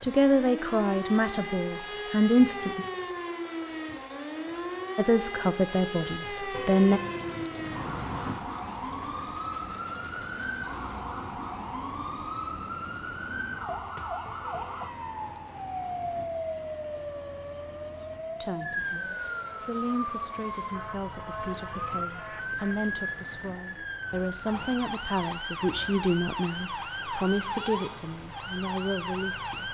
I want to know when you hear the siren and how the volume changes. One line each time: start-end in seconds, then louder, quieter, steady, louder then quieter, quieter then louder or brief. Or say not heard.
0.0-29.6 steady.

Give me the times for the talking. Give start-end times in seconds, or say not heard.
0.0-2.9, 5.0-7.0, 18.4-29.6.